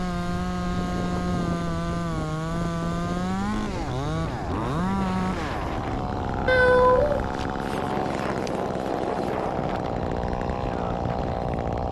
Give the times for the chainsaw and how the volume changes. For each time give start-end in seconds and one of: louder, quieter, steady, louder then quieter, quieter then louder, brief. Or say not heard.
0.0-11.8 steady.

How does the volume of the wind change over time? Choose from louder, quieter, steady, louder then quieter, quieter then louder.
steady.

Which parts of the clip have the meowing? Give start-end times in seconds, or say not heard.
6.5-7.2.